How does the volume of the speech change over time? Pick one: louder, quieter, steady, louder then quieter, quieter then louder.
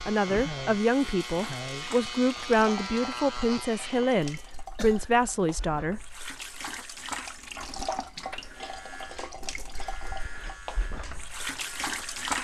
steady.